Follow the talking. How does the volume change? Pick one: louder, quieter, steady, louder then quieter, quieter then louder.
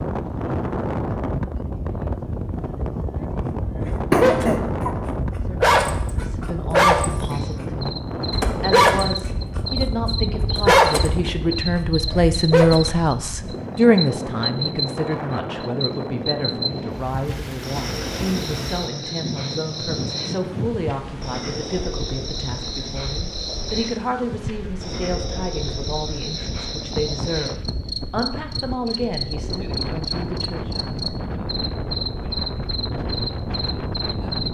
louder then quieter.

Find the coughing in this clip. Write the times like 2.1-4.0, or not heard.
4.1-5.0.